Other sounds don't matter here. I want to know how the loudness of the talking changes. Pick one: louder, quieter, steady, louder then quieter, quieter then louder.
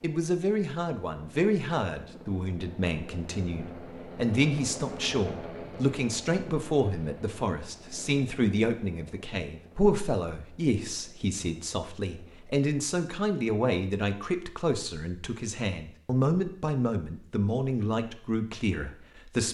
steady.